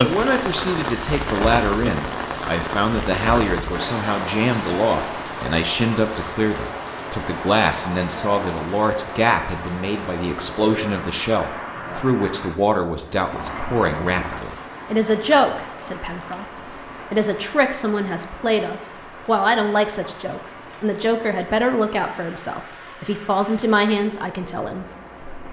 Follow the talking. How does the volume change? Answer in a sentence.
The volume of the talking stays about the same.